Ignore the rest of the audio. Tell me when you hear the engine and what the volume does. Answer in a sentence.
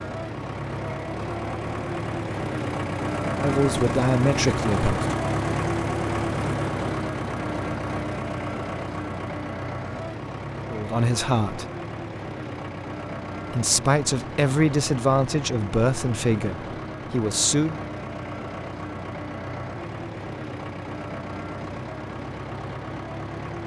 The engine can be heard from 0.0 to 23.6 s, getting quieter.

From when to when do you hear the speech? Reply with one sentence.
You can hear the speech from 3.4 to 5.2 s, from 10.7 to 11.7 s and from 13.5 to 17.8 s.